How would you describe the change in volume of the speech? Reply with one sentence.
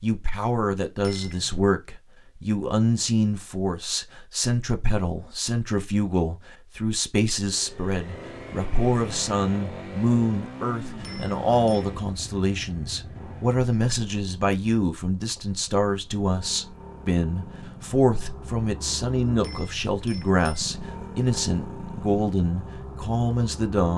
The volume of the speech stays about the same.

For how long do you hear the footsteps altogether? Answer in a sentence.
You can't hear the footsteps here.